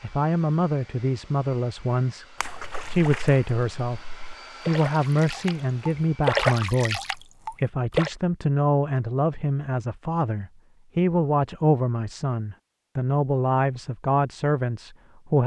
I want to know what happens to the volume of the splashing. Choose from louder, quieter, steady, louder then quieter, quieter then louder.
louder then quieter.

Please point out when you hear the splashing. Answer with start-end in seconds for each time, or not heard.
2.4-8.1.